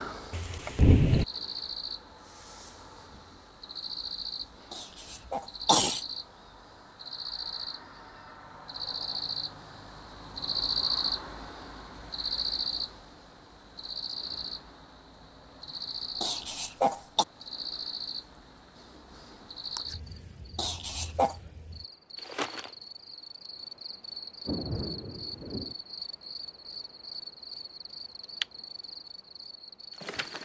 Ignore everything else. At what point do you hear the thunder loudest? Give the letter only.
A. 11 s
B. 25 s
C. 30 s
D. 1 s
D.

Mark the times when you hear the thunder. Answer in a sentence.
You can hear the thunder from 0.3 to 1.2 s and from 24.4 to 25.8 s.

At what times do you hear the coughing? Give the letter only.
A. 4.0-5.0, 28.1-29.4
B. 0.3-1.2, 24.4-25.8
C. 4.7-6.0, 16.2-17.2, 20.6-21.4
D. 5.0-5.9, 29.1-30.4
C.